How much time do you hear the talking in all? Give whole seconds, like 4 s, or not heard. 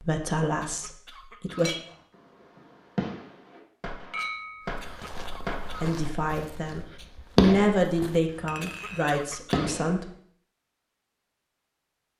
6 s.